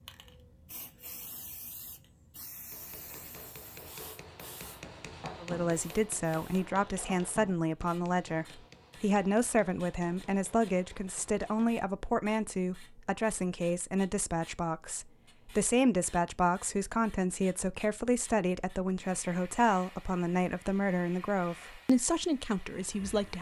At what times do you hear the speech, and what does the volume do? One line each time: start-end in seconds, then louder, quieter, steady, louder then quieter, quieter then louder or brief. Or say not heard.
5.4-23.3 steady.